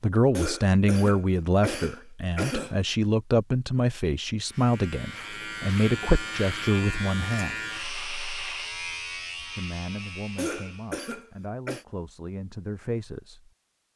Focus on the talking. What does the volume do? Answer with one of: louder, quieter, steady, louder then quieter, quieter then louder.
quieter.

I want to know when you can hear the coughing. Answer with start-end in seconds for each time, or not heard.
0.3-2.8, 10.3-11.8.